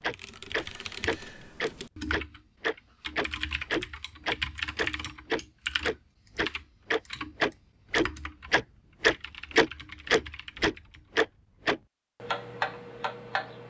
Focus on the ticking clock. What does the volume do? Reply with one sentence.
The loudness of the ticking clock goes up, then down.